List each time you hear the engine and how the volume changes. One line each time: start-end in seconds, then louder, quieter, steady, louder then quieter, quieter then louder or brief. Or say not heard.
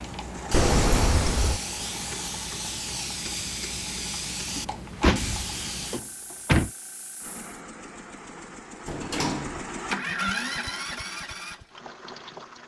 0.0-2.5 brief
7.2-12.6 louder then quieter.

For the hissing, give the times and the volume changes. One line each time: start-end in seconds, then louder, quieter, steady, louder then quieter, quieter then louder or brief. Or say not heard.
0.0-7.6 quieter.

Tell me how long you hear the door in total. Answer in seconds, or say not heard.
4 s.